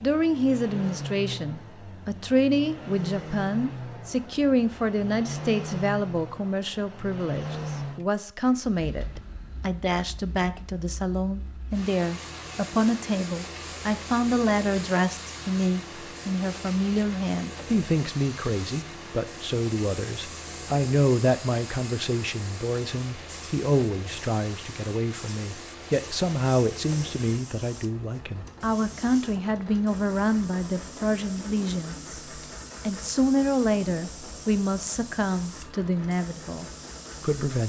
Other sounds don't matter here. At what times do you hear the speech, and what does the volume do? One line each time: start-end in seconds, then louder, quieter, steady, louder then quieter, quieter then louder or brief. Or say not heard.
0.0-32.2 steady
32.9-37.6 quieter.